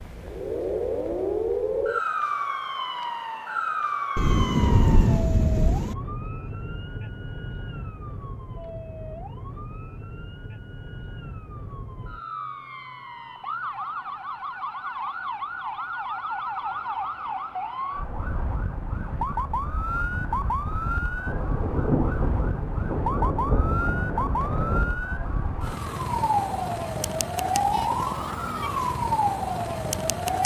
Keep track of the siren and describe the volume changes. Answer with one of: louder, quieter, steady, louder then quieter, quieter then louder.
quieter then louder.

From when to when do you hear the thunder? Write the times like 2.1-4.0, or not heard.
4.2-6.0, 21.2-24.9.